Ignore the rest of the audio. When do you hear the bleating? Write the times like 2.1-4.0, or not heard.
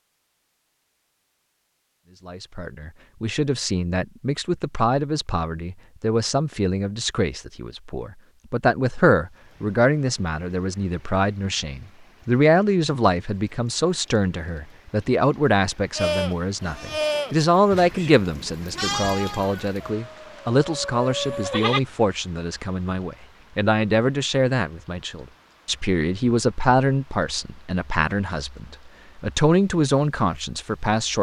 15.9-21.8.